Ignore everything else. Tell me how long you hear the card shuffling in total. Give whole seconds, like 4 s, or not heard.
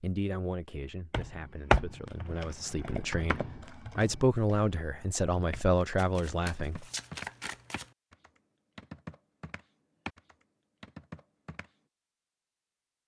2 s.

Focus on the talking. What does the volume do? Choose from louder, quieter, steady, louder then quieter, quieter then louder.
louder.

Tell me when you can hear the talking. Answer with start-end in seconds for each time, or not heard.
0.0-6.8.